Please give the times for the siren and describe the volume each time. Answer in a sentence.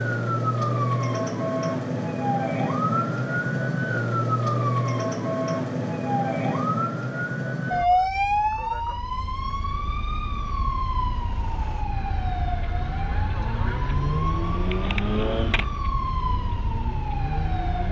The siren can be heard from 0.0 to 17.8 s, getting quieter.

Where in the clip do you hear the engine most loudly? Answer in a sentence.
The volume of the engine peaks at 15 seconds.